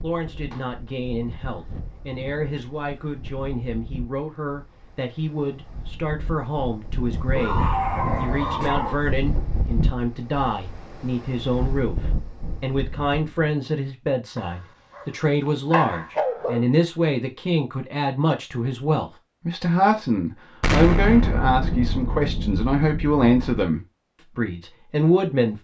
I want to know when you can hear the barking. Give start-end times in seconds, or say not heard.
7.3-9.0, 14.3-16.6.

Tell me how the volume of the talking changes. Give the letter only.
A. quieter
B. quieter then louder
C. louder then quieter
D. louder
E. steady
D.